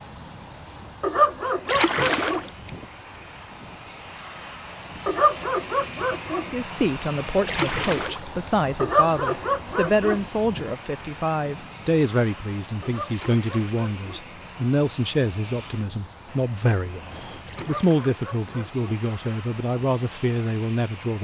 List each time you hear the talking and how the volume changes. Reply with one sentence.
You can hear the talking from 6.5 to 21.2 s, at a steady volume.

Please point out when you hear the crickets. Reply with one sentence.
The crickets can be heard from 0.0 to 17.4 s.